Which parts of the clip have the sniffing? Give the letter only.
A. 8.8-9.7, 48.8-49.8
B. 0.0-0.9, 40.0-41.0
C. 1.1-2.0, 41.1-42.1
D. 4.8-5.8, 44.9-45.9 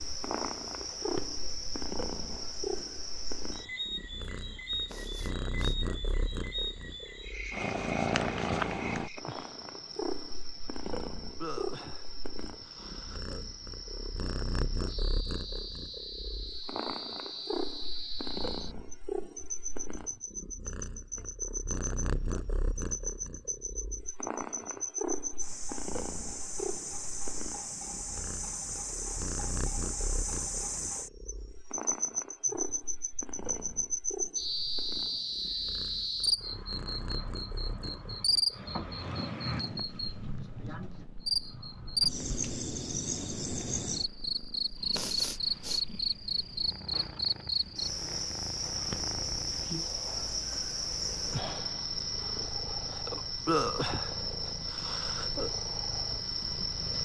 D.